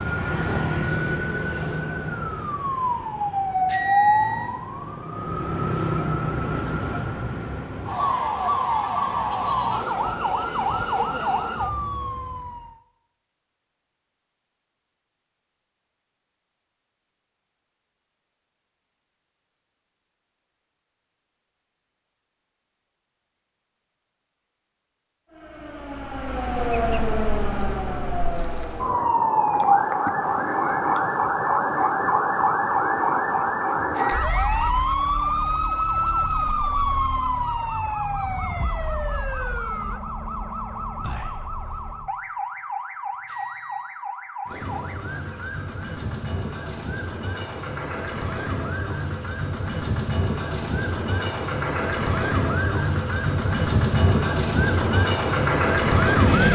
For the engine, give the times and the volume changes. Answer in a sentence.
The engine can be heard from 44.5 to 56.5 s, getting louder.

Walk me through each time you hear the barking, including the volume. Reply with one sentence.
You can't hear the barking here.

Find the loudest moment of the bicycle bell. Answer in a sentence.
The volume of the bicycle bell peaks at 4 seconds.